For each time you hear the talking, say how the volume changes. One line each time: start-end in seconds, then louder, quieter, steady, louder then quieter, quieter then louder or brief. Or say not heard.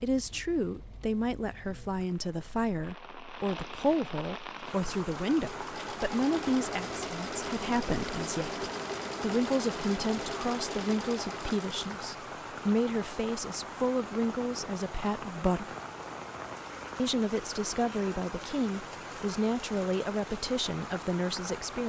0.0-15.8 steady
16.9-21.8 steady.